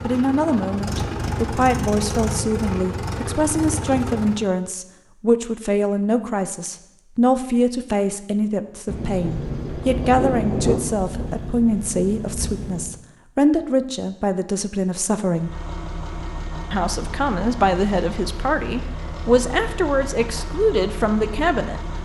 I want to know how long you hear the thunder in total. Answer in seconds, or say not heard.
2 s.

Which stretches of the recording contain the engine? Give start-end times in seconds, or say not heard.
0.0-4.5, 9.2-13.1, 15.3-21.9.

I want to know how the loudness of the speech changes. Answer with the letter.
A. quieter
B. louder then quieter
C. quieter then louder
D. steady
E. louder
D.